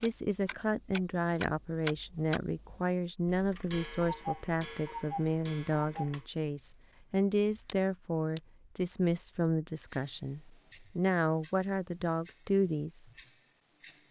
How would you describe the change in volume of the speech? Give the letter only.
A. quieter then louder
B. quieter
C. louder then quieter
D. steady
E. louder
D.